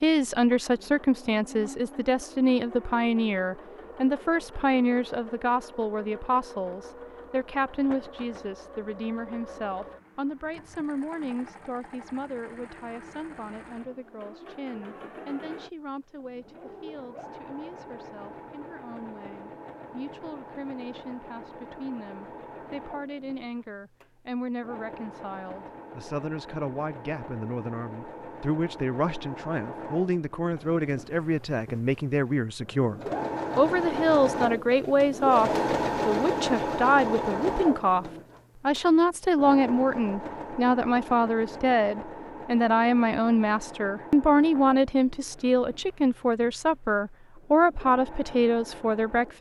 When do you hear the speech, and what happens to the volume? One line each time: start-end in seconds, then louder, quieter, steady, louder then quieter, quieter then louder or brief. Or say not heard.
0.0-49.3 quieter then louder.